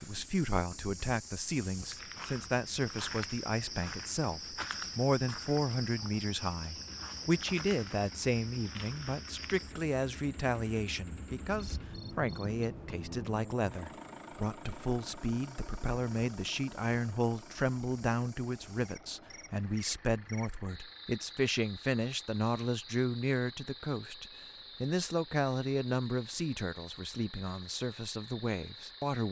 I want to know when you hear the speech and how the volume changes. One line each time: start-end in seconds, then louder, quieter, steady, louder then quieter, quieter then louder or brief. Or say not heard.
0.0-29.2 steady.